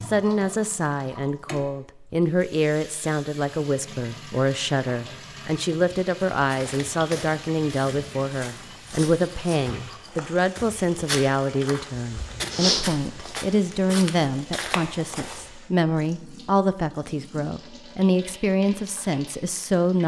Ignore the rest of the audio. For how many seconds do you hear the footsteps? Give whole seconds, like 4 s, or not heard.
9 s.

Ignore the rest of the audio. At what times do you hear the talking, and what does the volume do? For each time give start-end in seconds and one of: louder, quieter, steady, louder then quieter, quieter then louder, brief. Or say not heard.
0.0-20.0 steady.